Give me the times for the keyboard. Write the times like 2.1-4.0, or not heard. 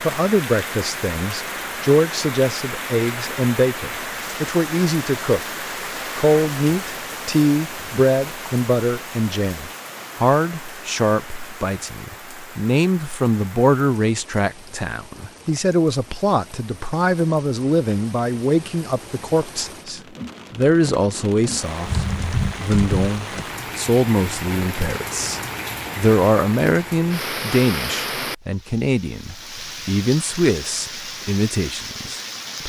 21.9-23.4.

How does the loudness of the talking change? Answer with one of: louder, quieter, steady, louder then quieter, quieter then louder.
steady.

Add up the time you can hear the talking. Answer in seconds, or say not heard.
32 s.